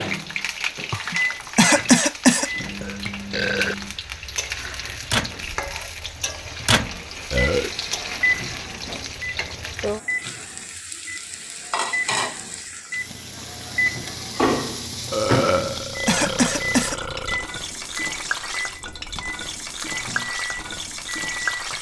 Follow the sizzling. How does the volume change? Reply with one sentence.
The loudness of the sizzling stays about the same.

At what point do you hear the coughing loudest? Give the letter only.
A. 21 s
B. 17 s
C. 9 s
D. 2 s
D.